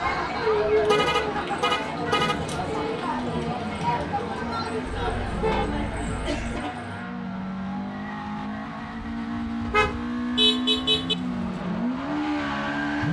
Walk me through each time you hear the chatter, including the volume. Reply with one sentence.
You can hear the chatter from 0.0 to 7.0 s, getting quieter.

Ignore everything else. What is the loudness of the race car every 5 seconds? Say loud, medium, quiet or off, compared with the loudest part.
medium, medium, loud.